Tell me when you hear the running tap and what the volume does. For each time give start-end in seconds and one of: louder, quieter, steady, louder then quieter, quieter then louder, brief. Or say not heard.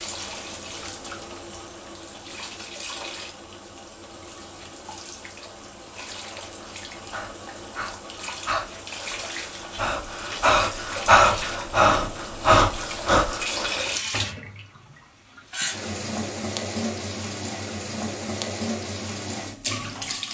0.0-20.2 louder.